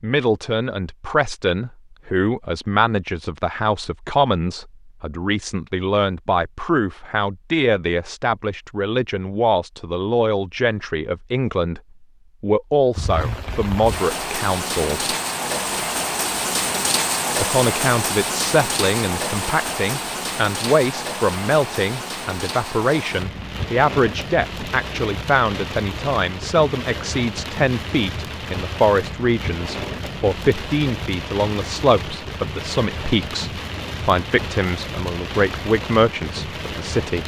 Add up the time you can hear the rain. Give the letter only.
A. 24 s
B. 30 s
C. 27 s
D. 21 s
A.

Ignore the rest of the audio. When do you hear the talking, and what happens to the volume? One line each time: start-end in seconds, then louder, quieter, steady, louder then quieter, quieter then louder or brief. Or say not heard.
0.0-11.8 steady
12.4-15.2 brief
17.4-37.2 steady.